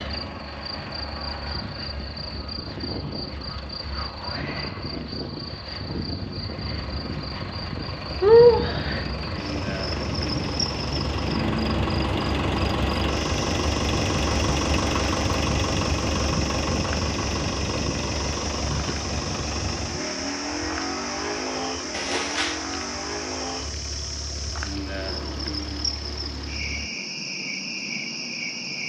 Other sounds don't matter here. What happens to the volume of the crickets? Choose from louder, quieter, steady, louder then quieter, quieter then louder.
louder then quieter.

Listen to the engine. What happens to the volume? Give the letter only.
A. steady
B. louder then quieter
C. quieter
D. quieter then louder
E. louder
B.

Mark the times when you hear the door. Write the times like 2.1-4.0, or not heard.
21.9-22.6.